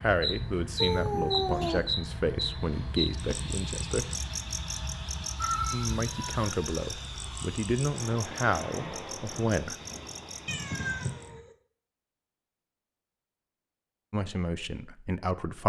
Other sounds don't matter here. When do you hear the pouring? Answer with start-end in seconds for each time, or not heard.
not heard.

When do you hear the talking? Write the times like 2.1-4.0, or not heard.
0.0-4.0, 5.7-9.8, 14.1-15.6.